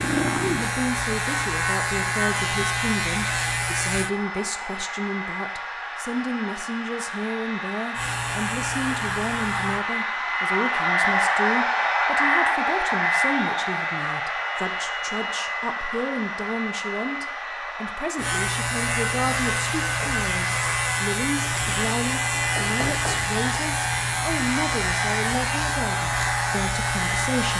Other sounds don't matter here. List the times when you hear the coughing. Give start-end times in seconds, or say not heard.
not heard.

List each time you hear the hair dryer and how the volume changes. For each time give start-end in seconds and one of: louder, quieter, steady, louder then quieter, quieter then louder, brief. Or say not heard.
0.0-27.5 louder then quieter.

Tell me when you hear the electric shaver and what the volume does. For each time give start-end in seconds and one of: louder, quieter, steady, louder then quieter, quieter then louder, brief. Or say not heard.
0.0-4.1 steady
8.0-9.8 brief
18.1-27.5 steady.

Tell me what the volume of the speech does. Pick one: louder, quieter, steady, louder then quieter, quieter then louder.
steady.